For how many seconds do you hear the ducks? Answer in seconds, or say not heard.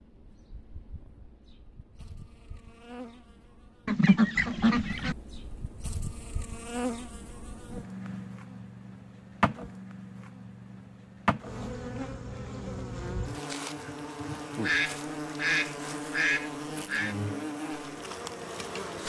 4 s.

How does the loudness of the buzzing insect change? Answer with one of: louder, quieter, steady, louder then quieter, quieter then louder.
louder.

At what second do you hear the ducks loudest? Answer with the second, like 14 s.
4 s.